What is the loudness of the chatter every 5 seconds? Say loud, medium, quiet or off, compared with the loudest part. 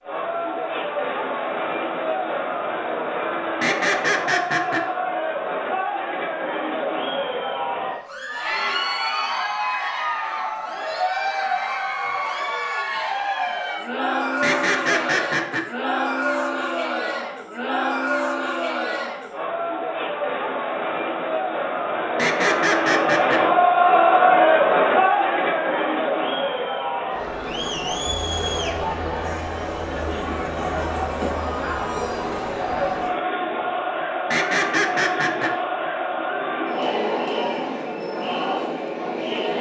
medium, medium, medium, medium, loud, medium, medium, medium.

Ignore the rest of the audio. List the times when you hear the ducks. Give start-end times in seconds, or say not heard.
3.6-4.8, 14.4-15.7, 22.1-23.4, 34.3-35.5.